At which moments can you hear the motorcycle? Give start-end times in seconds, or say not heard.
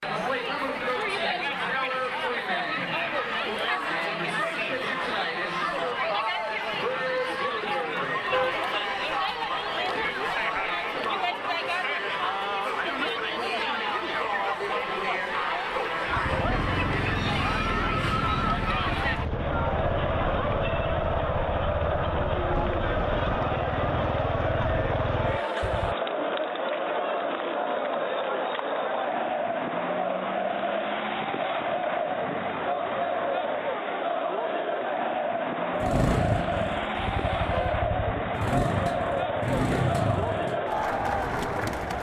16.1-25.9, 35.7-41.9.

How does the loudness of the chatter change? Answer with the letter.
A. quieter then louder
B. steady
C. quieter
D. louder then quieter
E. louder
B.